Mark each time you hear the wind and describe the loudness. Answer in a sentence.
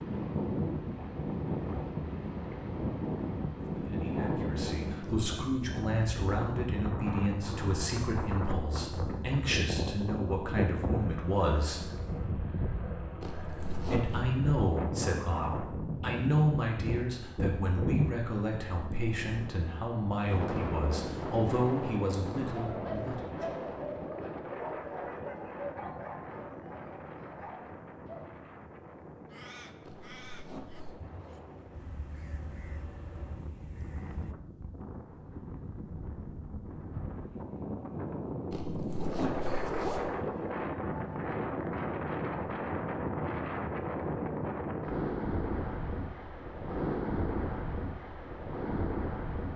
You can hear the wind from 0.0 to 49.5 s, getting quieter then louder.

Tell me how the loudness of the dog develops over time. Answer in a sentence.
The loudness of the dog goes down.